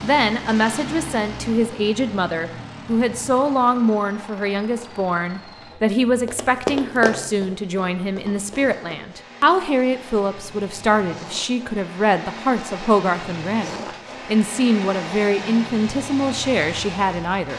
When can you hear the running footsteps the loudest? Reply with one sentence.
The volume of the running footsteps peaks at 7 seconds.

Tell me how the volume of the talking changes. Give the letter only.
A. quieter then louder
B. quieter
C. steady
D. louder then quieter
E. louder
C.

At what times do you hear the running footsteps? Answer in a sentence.
The running footsteps can be heard from 6.2 to 9.1 s.